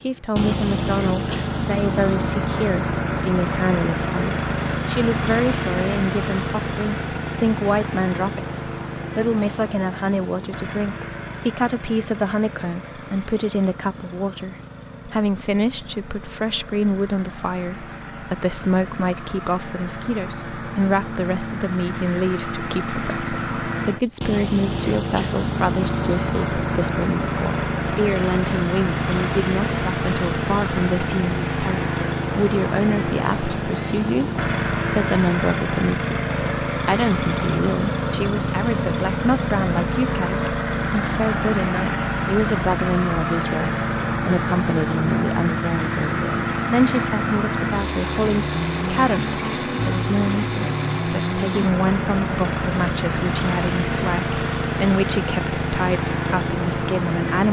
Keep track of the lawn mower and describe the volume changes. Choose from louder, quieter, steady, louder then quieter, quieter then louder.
quieter then louder.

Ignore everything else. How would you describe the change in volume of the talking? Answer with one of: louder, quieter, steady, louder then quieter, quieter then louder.
steady.